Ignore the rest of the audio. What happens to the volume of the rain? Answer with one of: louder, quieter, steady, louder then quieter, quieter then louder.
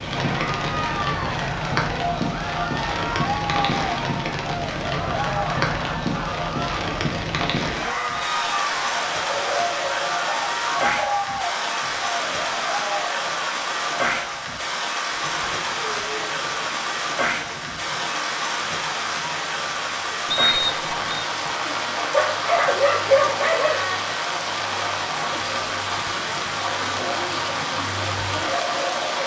steady.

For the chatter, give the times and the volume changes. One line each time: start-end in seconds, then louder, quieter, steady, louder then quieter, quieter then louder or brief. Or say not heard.
0.1-29.2 quieter then louder.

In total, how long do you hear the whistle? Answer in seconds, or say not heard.
2 s.